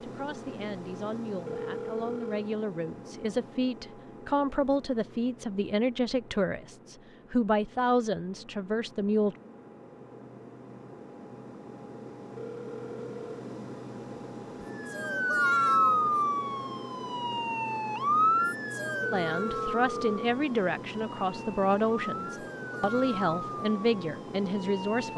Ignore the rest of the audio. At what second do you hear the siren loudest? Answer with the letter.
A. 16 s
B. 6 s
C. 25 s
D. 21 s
A.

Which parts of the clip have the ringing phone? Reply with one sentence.
The ringing phone can be heard from 1.4 to 2.5 s, from 12.3 to 13.4 s and from 19.0 to 20.3 s.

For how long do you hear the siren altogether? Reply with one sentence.
You can hear the siren for 10 seconds altogether.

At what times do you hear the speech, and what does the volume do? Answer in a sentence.
The speech can be heard from 0.0 to 9.3 s, getting louder; and from 19.1 to 25.1 s, at a steady volume.